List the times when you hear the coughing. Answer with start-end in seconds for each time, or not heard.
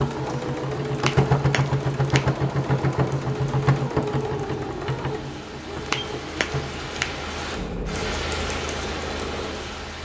not heard.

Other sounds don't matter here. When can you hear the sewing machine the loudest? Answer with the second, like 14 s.
2 s.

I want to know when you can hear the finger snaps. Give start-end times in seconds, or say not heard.
1.0-2.2, 5.8-7.2.